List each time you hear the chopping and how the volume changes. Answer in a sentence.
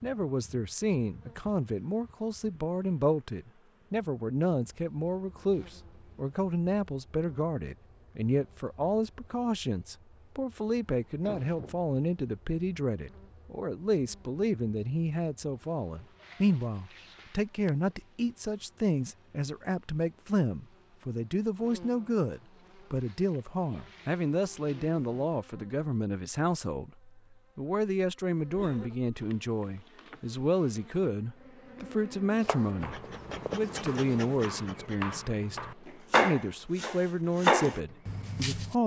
The chopping can be heard from 32.4 to 38.8 s, getting louder.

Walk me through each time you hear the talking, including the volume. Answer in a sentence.
The talking can be heard from 0.0 to 38.8 s, at a steady volume.